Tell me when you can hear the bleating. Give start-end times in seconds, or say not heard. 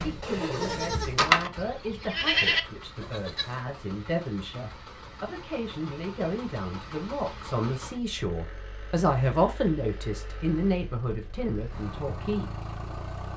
0.0-3.6.